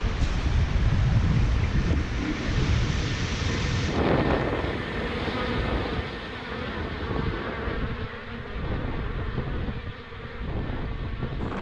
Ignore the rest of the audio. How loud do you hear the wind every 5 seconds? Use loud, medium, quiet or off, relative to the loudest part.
loud, medium, medium.